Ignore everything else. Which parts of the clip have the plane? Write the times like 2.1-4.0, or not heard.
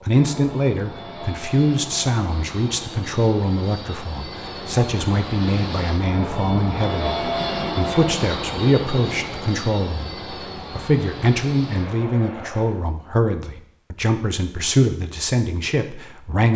0.0-12.8.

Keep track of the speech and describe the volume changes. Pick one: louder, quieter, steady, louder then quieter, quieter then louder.
steady.